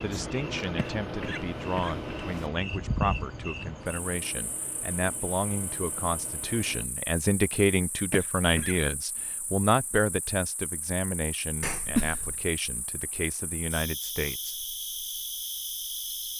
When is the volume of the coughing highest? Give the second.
12 s.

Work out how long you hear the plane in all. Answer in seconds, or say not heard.
7 s.